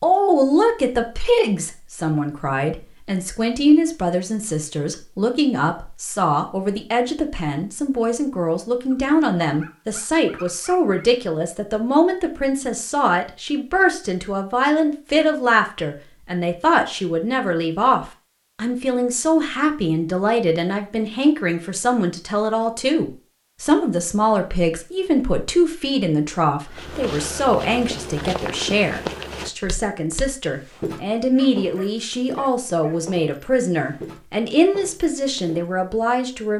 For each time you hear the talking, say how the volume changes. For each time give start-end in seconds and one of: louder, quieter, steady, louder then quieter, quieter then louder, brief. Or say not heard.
0.0-36.5 steady.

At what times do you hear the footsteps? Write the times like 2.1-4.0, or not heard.
26.7-35.7.